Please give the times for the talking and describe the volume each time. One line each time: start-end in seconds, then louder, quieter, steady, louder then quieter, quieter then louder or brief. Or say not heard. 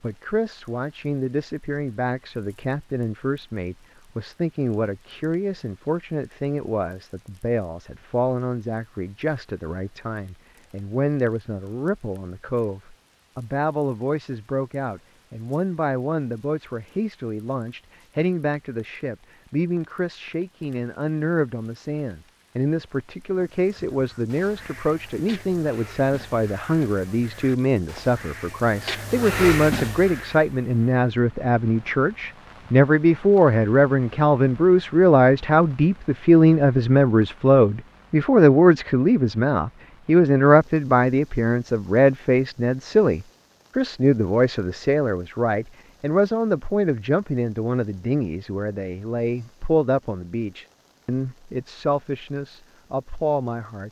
0.0-53.8 louder then quieter.